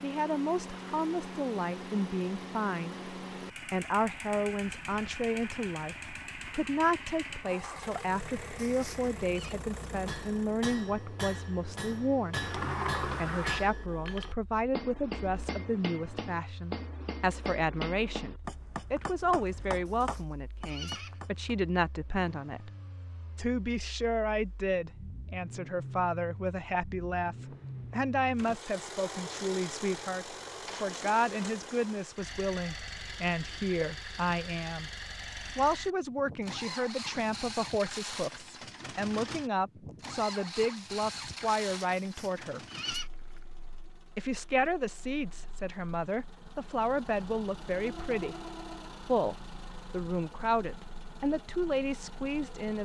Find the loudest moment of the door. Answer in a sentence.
The volume of the door peaks at 13 seconds.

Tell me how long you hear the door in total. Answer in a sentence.
The door can be heard for 3 seconds in total.